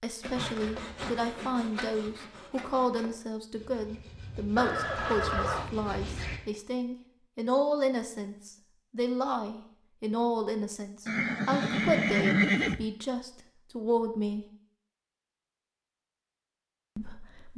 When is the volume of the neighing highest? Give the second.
12 s.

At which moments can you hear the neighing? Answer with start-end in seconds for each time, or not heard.
4.5-5.7, 11.1-12.8.